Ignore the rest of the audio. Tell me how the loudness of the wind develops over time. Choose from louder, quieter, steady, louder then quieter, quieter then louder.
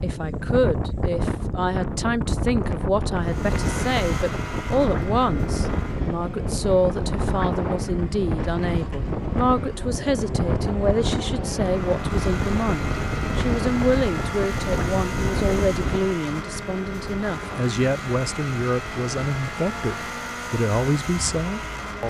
quieter.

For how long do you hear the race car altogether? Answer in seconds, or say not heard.
19 s.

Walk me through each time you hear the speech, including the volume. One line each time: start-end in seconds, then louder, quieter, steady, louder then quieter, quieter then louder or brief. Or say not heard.
0.0-22.0 steady.